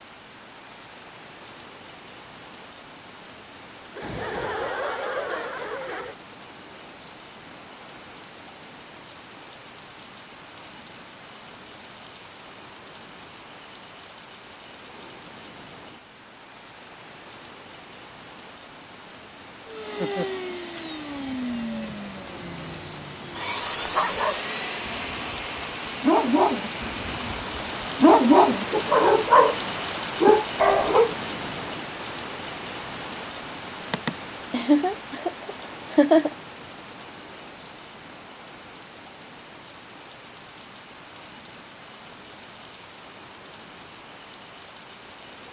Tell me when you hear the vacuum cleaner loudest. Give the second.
24 s.